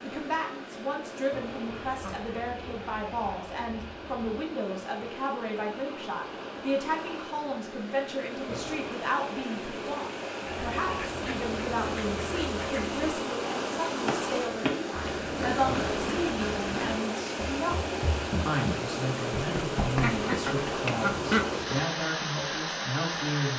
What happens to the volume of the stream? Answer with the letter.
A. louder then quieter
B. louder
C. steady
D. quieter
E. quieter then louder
B.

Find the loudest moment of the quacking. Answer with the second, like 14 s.
21 s.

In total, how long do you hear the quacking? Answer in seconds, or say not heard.
7 s.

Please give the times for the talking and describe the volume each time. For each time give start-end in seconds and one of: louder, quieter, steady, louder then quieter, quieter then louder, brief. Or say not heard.
0.0-23.5 steady.